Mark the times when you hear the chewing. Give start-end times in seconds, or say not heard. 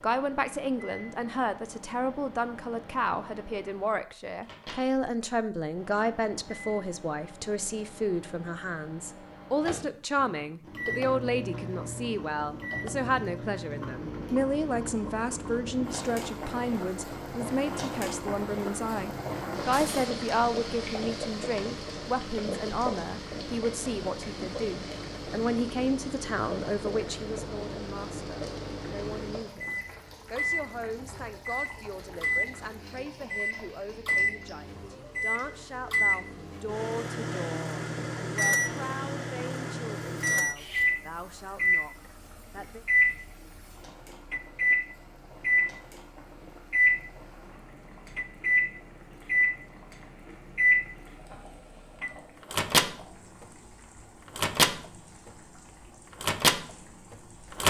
not heard.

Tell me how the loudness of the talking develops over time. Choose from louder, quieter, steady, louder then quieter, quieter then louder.
quieter.